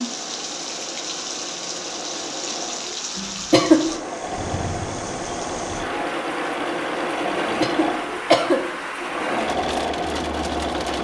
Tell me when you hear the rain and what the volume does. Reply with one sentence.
The rain can be heard from 0.0 to 11.0 s, at a steady volume.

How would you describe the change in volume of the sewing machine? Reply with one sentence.
The volume of the sewing machine goes up.